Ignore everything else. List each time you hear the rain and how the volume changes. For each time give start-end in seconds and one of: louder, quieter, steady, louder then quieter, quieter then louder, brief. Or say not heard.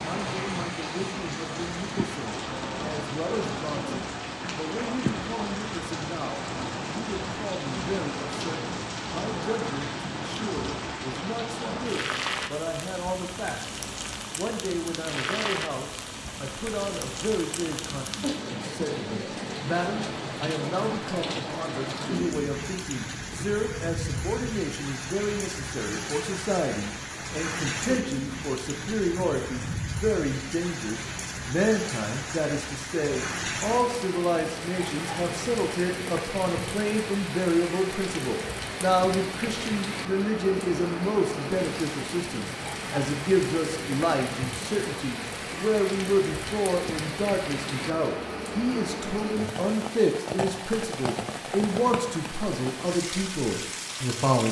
0.0-54.4 steady.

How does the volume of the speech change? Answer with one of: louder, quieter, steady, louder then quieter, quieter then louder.
louder.